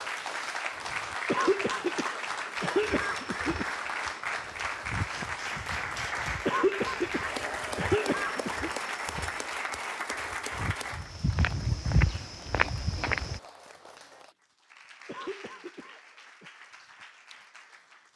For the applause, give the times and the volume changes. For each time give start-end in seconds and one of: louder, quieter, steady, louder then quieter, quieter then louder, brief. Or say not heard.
0.0-18.1 quieter.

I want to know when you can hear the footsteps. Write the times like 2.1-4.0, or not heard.
2.6-13.4.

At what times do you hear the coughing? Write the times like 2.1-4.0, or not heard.
1.2-3.7, 6.5-8.7, 15.1-16.5.